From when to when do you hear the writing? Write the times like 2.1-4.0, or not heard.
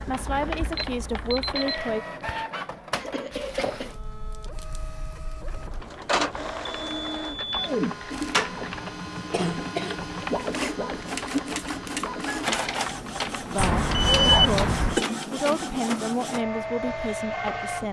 not heard.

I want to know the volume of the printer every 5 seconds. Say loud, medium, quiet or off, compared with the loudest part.
medium, loud, loud, loud.